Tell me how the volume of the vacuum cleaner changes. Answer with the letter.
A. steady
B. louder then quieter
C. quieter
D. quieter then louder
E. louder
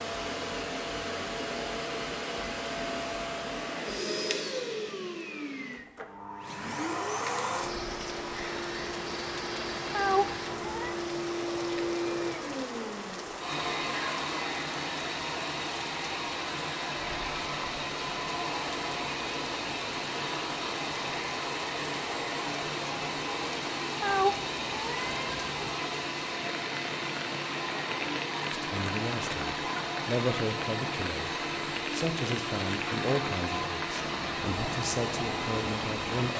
A.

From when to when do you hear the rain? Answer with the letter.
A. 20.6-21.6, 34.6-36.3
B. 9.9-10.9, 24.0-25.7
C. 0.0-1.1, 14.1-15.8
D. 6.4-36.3
D.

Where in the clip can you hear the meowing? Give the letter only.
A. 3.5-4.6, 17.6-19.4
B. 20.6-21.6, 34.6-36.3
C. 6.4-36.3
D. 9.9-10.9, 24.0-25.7
D.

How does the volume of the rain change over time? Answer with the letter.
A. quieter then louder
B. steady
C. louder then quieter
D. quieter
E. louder
B.